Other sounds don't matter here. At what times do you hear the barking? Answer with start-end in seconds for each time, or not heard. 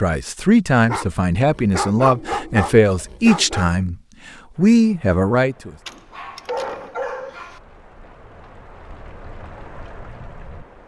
0.8-3.8, 5.8-7.6.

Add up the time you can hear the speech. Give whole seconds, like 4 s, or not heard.
5 s.